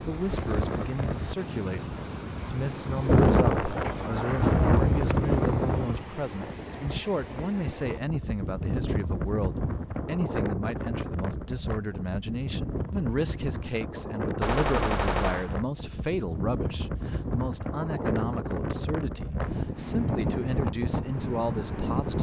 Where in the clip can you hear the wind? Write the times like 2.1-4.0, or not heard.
0.0-22.1.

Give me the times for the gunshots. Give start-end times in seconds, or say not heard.
14.4-15.6.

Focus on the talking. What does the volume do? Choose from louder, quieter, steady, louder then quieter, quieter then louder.
steady.